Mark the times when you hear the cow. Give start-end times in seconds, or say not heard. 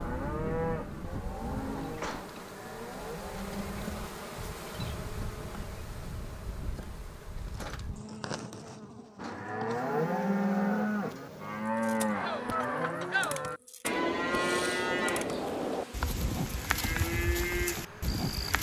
0.0-4.0, 9.2-18.5.